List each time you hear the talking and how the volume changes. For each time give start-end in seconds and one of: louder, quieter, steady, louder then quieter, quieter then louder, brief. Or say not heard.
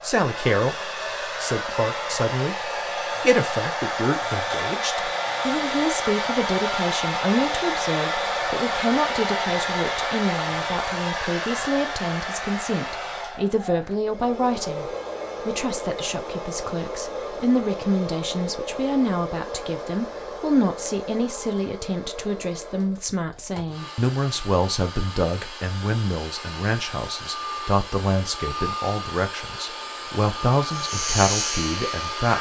0.0-32.3 steady.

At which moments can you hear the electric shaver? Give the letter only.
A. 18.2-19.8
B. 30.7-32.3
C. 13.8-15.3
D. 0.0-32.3
B.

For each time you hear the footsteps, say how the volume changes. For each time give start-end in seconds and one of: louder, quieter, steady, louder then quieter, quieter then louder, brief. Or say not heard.
not heard.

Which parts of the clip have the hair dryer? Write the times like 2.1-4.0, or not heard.
0.0-32.3.